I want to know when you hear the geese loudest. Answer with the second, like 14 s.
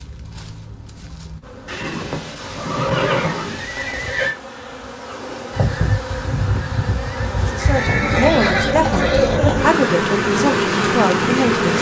6 s.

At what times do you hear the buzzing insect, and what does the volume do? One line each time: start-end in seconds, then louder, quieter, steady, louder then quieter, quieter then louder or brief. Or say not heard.
0.0-11.7 louder.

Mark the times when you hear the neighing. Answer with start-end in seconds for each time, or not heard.
1.6-4.3, 7.5-9.6.